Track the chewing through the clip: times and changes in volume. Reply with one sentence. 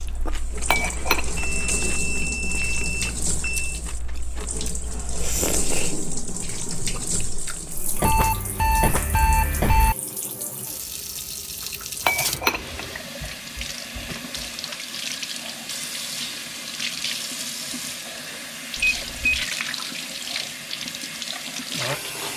The chewing can be heard from 0.0 to 8.0 s, getting louder then quieter.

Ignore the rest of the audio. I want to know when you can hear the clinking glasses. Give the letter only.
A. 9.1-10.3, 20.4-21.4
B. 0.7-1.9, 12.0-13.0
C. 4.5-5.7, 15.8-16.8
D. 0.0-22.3
B.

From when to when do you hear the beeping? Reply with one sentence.
The beeping can be heard from 1.4 to 3.8 s, from 8.0 to 9.9 s and from 18.8 to 19.4 s.